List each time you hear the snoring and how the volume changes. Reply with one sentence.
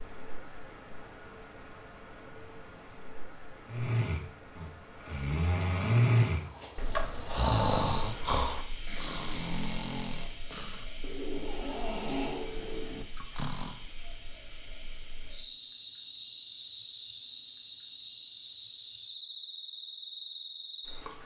The snoring can be heard from 3.6 to 13.8 s, getting louder then quieter.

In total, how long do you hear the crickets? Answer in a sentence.
You can hear the crickets for 21 seconds altogether.